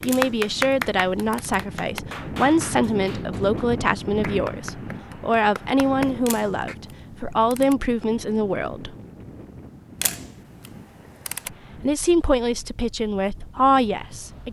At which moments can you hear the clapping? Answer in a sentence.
You can hear the clapping from 0.0 to 6.8 s.